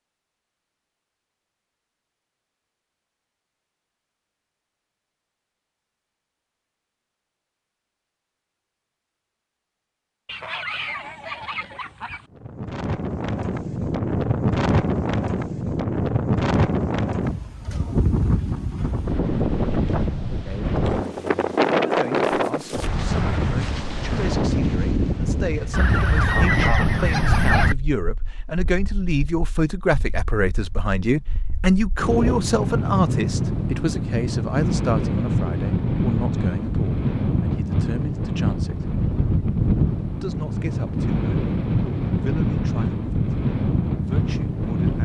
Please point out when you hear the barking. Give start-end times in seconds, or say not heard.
not heard.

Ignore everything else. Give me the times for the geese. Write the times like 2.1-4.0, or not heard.
10.2-12.2, 25.7-27.8.